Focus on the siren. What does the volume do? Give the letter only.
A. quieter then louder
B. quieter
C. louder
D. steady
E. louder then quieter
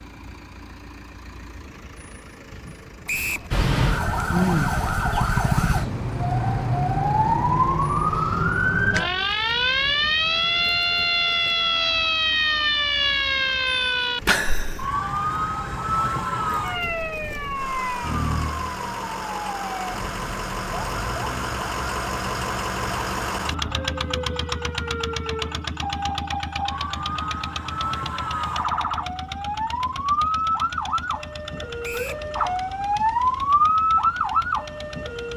A.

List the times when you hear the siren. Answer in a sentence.
You can hear the siren from 3.5 to 35.3 s.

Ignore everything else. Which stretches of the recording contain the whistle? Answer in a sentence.
The whistle can be heard from 3.0 to 3.5 s and from 31.8 to 32.2 s.